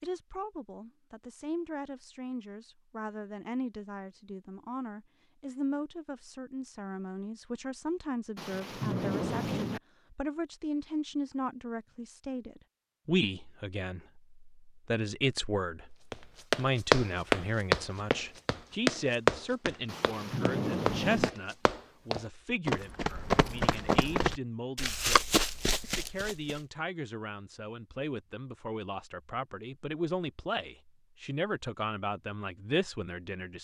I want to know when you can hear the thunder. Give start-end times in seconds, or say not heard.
8.3-9.8, 19.9-21.3.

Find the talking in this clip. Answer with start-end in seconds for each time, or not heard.
0.0-33.5.